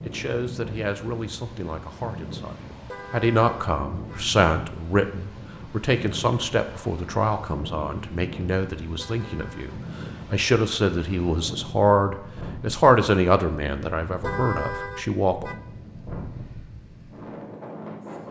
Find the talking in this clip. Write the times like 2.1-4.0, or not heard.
0.0-15.5.